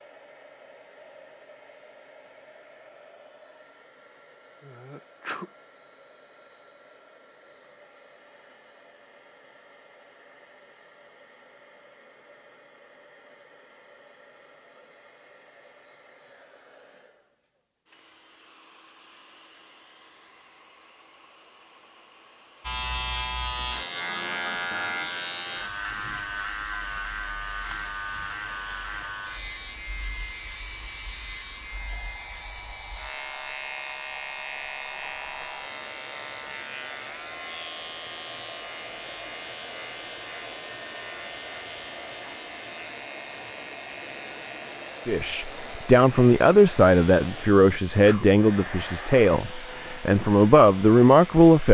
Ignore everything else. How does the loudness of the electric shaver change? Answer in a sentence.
The volume of the electric shaver goes down.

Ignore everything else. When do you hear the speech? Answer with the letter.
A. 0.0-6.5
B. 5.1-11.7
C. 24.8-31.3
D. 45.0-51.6
D.